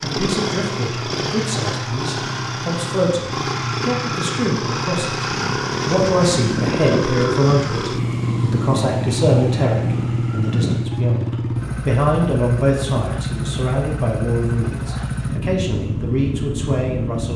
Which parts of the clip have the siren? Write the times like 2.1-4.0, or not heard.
5.2-11.0.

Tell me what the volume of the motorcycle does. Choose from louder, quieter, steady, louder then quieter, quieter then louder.
steady.